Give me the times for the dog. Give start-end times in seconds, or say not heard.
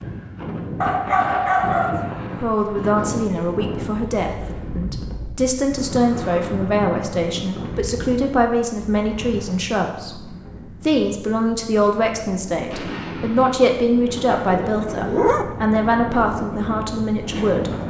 0.8-2.5, 14.6-15.4.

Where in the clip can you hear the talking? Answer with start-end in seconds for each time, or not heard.
2.4-17.7.